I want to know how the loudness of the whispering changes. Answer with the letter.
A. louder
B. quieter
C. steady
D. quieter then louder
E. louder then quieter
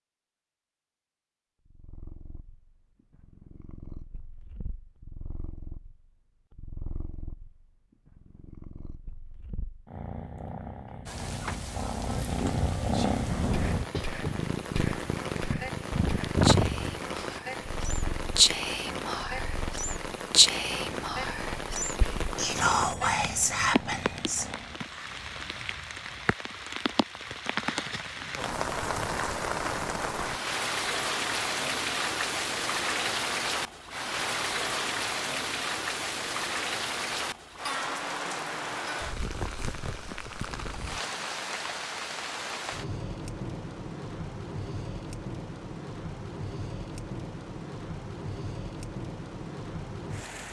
A.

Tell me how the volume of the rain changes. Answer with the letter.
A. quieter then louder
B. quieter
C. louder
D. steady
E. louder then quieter
E.